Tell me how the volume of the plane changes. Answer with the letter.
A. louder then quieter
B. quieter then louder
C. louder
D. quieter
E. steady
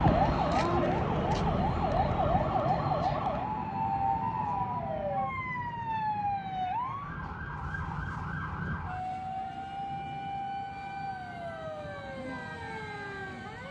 D.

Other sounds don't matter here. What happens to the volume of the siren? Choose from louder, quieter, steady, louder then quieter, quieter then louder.
quieter.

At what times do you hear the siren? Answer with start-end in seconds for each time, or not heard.
0.0-13.6.